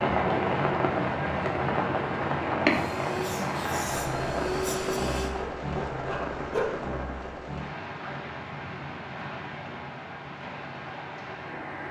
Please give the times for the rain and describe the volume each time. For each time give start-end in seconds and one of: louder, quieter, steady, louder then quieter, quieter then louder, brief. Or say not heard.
0.0-11.8 quieter.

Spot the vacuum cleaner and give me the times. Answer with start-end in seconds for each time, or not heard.
2.6-5.3.